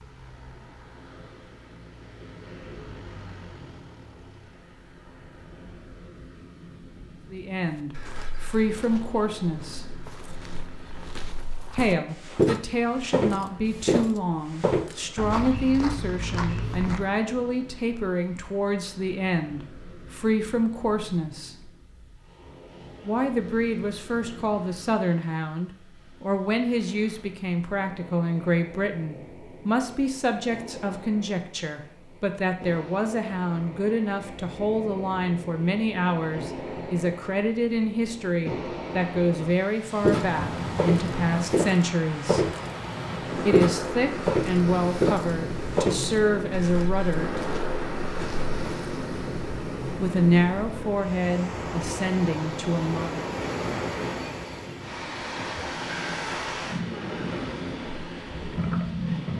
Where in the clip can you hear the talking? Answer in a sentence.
You can hear the talking from 7.3 to 10.0 s, from 11.7 to 21.7 s, from 23.1 to 42.5 s, from 43.4 to 47.4 s and from 50.0 to 53.2 s.